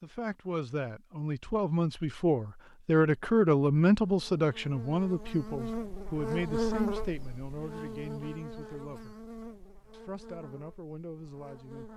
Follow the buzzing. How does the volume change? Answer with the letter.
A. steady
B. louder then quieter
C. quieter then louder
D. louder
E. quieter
B.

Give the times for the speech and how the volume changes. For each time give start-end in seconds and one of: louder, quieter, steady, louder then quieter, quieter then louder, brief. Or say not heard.
0.0-9.2 louder then quieter
9.9-11.9 brief.